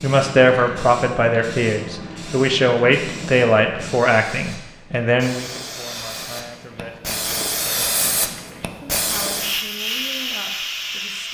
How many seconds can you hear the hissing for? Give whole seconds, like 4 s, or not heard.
11 s.